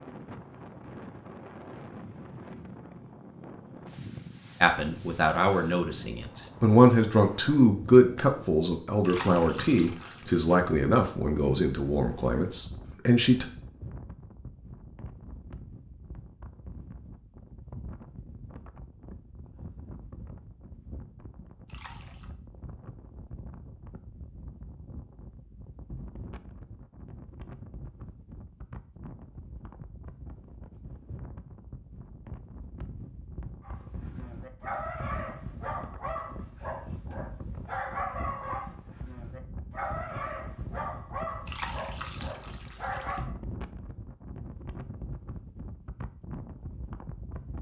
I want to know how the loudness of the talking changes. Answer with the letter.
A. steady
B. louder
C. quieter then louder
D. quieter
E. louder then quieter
E.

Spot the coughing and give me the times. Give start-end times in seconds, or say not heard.
not heard.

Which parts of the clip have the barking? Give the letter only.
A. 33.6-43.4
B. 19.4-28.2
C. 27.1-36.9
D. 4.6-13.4
A.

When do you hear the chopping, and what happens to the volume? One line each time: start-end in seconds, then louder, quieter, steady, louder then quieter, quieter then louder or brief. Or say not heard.
not heard.